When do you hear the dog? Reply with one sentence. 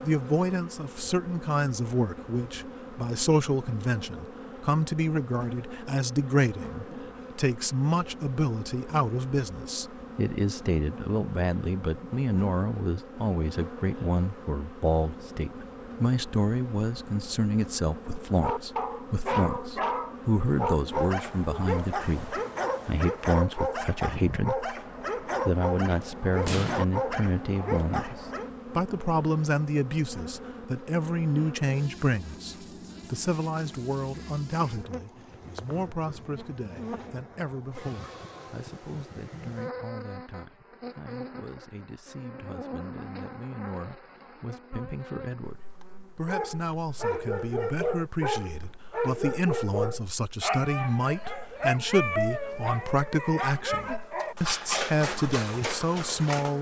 You can hear the dog from 18.4 to 28.5 s and from 46.2 to 56.5 s.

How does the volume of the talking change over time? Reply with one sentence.
The volume of the talking goes down, then up.